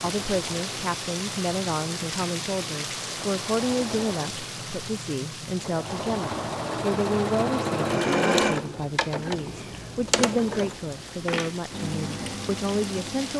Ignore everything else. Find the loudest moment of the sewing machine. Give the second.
8 s.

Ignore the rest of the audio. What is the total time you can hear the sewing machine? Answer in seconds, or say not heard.
13 s.